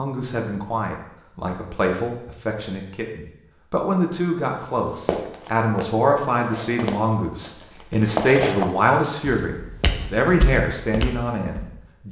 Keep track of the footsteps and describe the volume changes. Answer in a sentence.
The volume of the footsteps goes up, then down.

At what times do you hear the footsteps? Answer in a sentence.
The footsteps can be heard from 5.0 to 11.7 s.